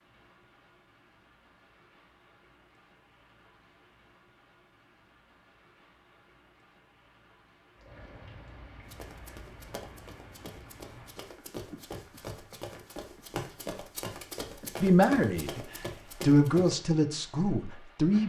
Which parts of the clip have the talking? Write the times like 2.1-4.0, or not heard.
14.8-15.6, 16.2-18.2.